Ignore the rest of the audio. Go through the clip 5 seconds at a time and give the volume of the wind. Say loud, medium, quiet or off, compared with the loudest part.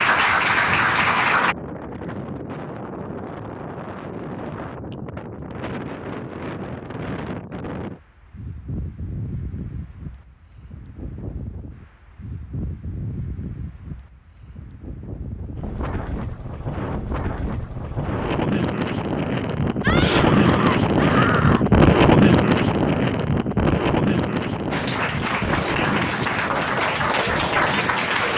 quiet, quiet, quiet, medium, loud, medium.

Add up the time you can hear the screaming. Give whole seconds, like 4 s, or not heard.
2 s.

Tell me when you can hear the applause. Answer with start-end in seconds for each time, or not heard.
0.0-1.6, 24.7-28.3.